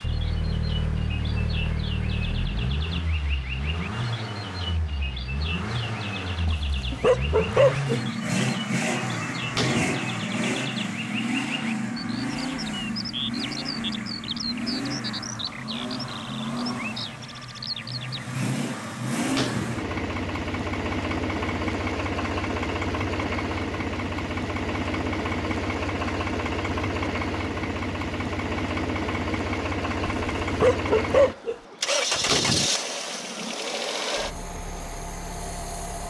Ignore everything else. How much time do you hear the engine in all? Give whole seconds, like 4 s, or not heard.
36 s.